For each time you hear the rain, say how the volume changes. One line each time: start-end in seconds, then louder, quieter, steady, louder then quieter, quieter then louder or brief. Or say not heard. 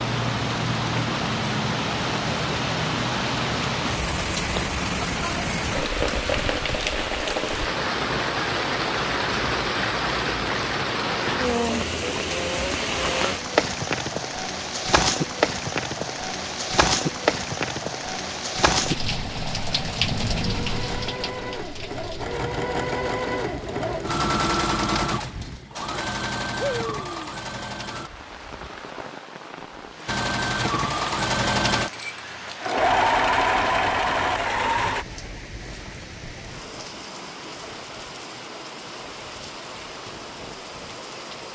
0.0-41.4 quieter.